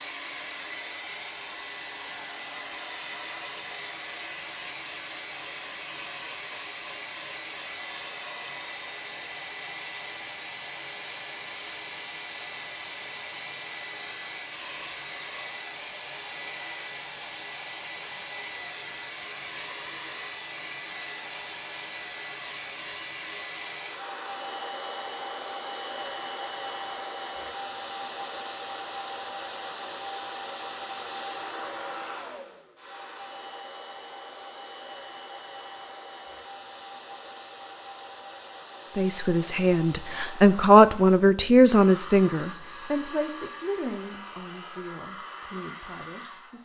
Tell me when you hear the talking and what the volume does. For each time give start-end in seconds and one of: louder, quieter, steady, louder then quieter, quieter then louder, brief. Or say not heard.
39.0-46.5 louder then quieter.